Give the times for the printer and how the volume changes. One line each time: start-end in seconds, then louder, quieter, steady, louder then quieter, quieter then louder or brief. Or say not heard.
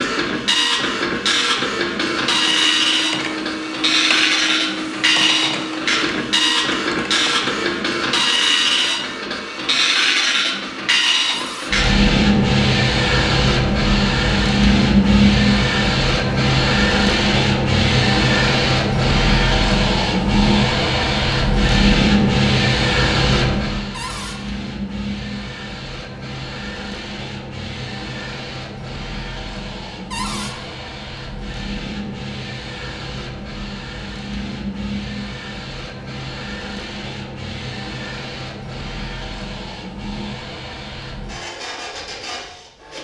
0.0-42.9 quieter.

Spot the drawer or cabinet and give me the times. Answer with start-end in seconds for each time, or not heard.
11.3-11.8, 23.9-24.4, 30.1-30.6.